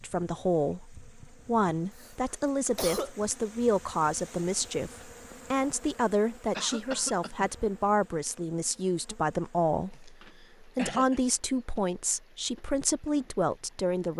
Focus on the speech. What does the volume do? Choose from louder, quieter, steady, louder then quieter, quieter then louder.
steady.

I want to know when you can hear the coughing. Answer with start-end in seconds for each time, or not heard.
1.9-3.1, 6.5-7.5, 10.1-11.2.